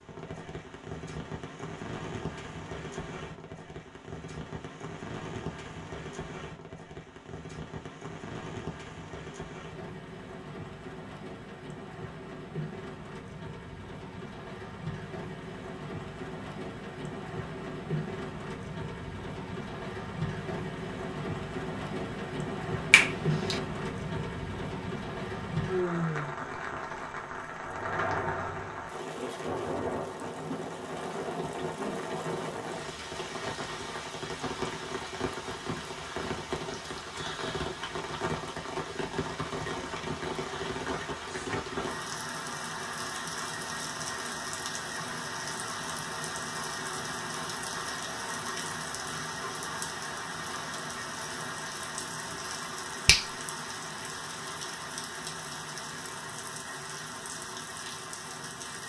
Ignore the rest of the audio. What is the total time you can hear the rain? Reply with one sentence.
The rain can be heard for 59 seconds in total.